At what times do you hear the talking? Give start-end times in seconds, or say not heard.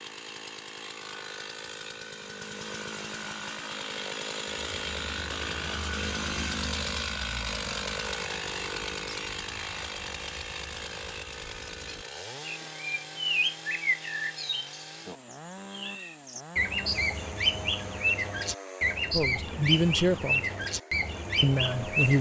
19.1-20.4, 21.4-22.1.